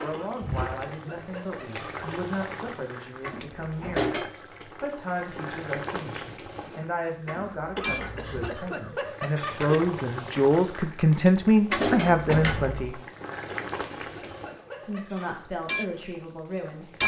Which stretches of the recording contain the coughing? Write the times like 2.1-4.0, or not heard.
0.1-2.1, 7.8-9.8, 13.4-15.4.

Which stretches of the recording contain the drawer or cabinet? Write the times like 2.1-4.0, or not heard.
3.2-4.1, 7.2-8.3, 11.7-12.8.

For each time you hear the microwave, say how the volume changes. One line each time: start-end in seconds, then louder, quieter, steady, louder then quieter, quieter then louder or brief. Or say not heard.
not heard.